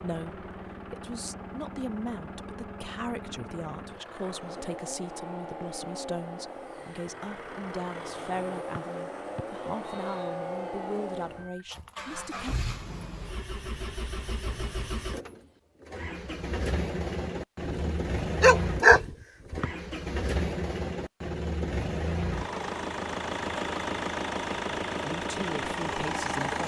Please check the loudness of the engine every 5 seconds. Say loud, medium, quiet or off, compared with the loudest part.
medium, medium, medium, loud, loud, loud.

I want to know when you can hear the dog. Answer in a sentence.
You can hear the dog from 17.6 to 19.6 s.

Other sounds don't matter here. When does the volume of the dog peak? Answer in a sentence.
The volume of the dog peaks at 19 seconds.